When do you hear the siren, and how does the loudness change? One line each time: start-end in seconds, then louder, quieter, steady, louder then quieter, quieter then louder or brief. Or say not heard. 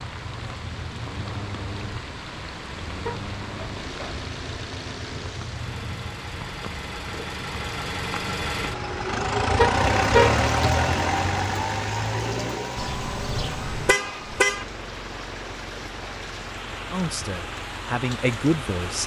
not heard.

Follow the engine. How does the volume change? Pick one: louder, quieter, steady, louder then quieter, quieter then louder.
louder then quieter.